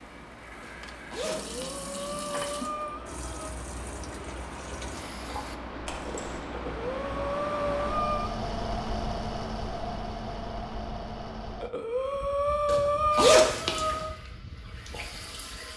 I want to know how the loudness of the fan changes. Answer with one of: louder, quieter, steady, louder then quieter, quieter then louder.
louder then quieter.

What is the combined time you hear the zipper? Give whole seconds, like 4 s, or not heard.
3 s.